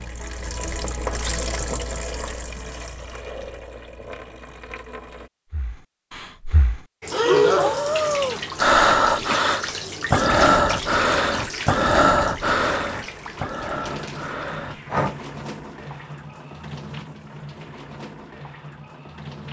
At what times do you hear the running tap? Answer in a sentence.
The running tap can be heard from 0.0 to 5.3 s and from 7.0 to 19.4 s.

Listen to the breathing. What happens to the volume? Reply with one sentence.
The loudness of the breathing goes down.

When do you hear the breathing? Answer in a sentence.
The breathing can be heard from 5.5 to 15.2 s.